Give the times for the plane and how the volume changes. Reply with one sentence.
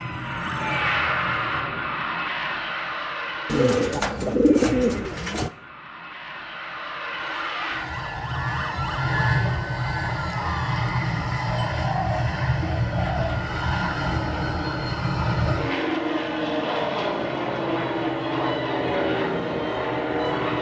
The plane can be heard from 0.0 to 20.5 s, getting quieter then louder.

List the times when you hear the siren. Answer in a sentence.
You can hear the siren from 0.0 to 1.7 s and from 7.2 to 10.8 s.